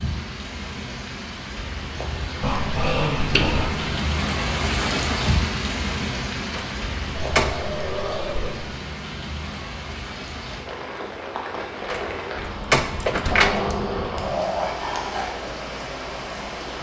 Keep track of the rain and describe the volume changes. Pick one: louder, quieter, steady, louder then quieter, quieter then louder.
louder then quieter.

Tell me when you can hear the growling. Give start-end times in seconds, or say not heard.
2.4-3.7, 7.2-8.7, 13.3-15.3.